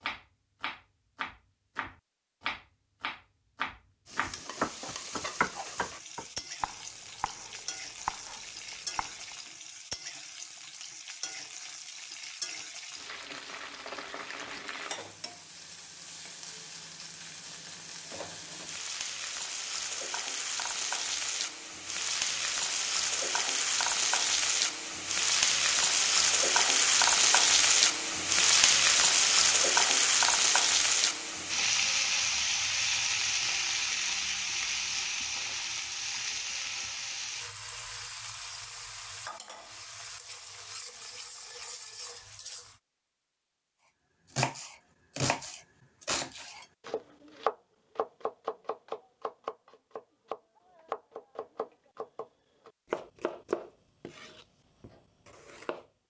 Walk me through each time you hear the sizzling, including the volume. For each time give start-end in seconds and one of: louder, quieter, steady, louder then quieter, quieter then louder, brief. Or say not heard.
4.0-42.8 louder then quieter.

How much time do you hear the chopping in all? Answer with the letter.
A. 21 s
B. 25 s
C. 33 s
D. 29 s
A.